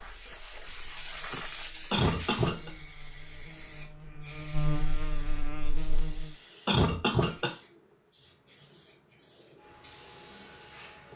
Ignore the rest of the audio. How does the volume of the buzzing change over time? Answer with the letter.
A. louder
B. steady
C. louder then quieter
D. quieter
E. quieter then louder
C.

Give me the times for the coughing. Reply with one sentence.
The coughing can be heard from 1.9 to 2.7 s and from 6.7 to 7.5 s.